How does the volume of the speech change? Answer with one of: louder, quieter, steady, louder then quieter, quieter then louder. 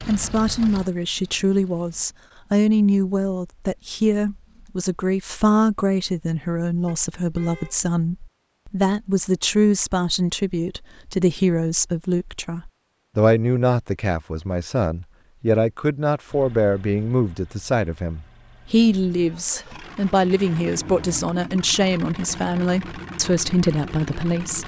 steady.